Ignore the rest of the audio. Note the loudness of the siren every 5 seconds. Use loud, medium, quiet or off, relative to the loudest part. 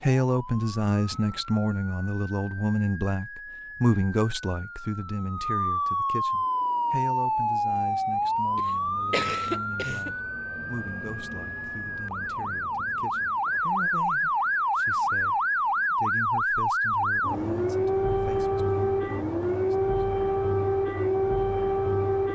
quiet, loud, loud, loud, loud.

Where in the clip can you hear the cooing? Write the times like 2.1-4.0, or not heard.
not heard.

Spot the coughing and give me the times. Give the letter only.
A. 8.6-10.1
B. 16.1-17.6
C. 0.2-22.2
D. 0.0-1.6
A.